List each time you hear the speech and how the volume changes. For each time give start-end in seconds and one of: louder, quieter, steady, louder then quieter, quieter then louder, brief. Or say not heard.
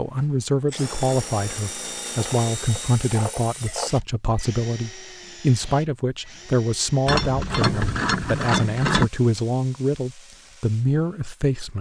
0.0-11.7 steady.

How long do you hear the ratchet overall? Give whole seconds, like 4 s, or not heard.
4 s.